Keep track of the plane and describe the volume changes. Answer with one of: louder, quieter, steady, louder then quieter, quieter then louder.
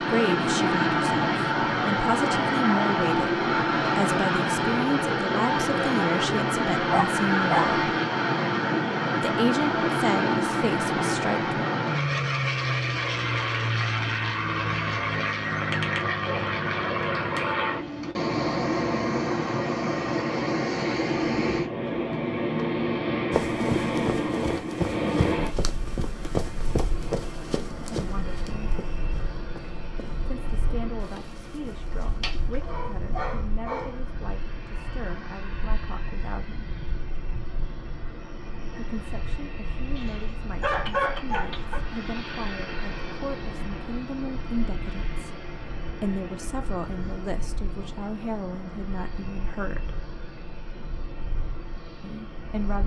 quieter.